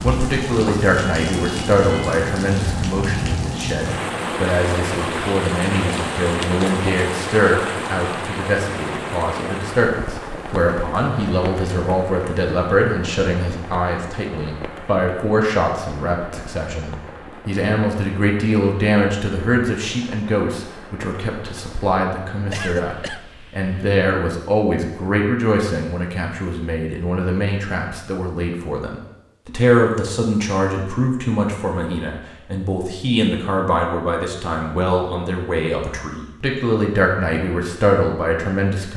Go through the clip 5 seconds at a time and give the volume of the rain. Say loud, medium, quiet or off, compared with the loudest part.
loud, loud, medium, quiet, quiet, off, off, off.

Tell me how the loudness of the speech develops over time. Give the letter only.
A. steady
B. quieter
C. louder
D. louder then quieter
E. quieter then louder
A.